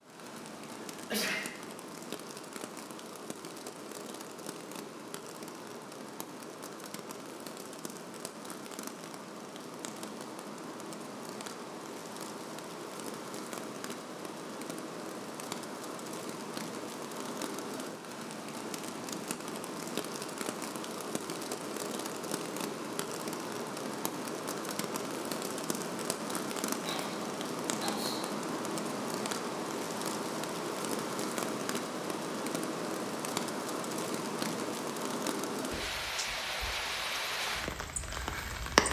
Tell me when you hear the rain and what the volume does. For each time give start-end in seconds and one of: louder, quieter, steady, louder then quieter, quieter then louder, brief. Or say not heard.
0.0-38.8 louder.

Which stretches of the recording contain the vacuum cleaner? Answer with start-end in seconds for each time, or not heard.
not heard.